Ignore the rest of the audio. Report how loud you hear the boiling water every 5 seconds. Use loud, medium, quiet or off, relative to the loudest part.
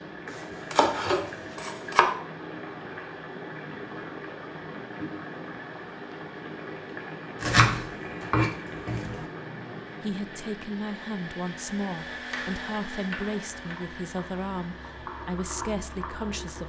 loud, loud, medium, loud.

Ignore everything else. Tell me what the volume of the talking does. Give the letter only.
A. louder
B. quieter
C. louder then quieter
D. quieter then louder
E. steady
E.